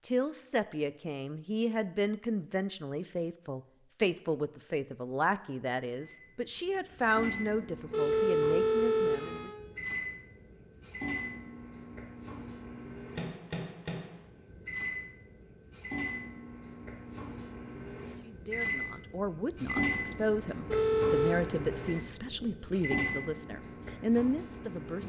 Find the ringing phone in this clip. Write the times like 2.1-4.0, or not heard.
7.9-9.6, 20.6-21.4.